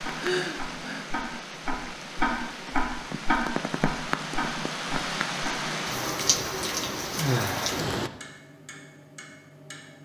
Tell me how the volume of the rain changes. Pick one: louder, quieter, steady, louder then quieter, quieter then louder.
louder.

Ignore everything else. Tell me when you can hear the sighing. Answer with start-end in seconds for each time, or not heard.
0.1-1.1, 7.2-7.8.